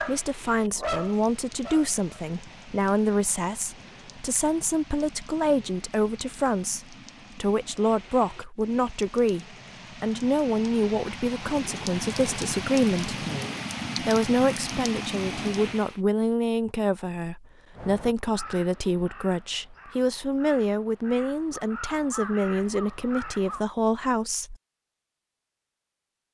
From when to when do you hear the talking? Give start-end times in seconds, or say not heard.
0.0-13.2, 14.0-24.6.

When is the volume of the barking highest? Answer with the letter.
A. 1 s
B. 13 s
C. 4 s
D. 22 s
A.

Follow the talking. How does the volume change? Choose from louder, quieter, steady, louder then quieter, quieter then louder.
steady.